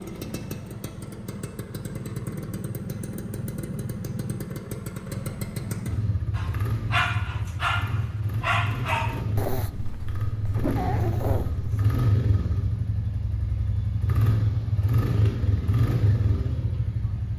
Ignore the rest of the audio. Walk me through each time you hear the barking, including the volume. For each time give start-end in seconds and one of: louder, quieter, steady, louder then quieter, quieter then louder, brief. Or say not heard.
6.3-11.9 quieter then louder.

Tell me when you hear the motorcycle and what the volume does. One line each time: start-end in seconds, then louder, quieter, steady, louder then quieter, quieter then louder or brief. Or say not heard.
0.0-17.3 louder.